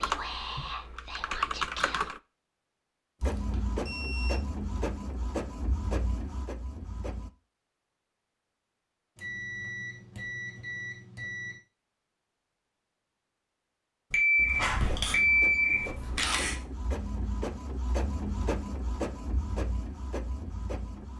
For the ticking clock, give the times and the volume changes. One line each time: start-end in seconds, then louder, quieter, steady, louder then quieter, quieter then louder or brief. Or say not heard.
not heard.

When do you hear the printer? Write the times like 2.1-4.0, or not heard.
3.2-7.3, 14.3-21.1.